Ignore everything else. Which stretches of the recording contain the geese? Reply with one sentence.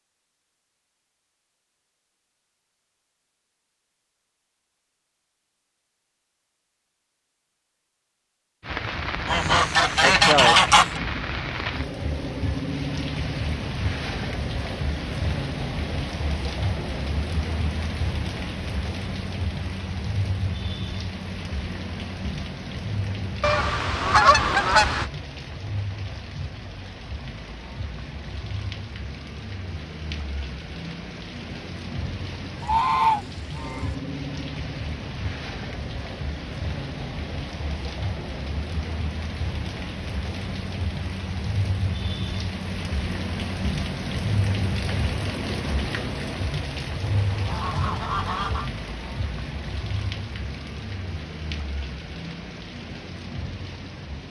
You can hear the geese from 9.2 to 11.0 s, from 23.4 to 25.1 s, from 32.6 to 33.9 s and from 47.0 to 48.7 s.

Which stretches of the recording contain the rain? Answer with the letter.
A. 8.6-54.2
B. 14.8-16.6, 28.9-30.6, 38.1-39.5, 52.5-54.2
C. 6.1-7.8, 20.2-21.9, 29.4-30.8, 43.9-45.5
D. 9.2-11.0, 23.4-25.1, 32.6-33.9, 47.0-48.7
A.